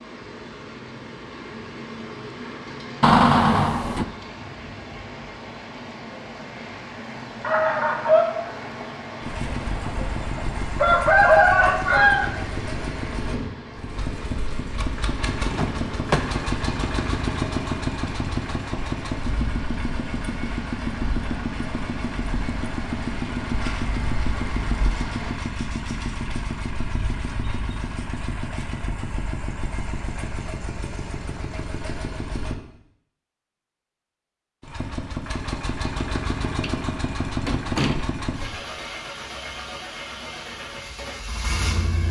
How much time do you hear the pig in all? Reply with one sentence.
The pig can't be heard in this clip.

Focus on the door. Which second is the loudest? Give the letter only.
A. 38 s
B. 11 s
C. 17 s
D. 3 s
D.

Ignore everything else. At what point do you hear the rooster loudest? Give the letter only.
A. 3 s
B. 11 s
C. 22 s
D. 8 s
B.